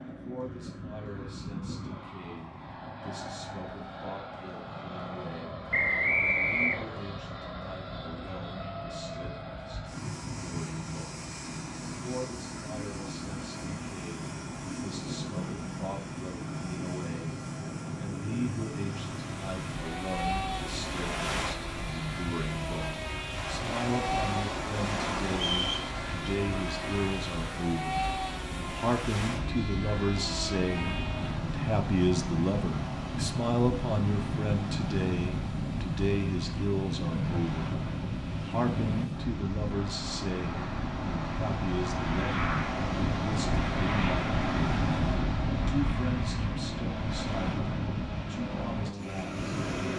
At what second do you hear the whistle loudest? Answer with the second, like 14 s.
6 s.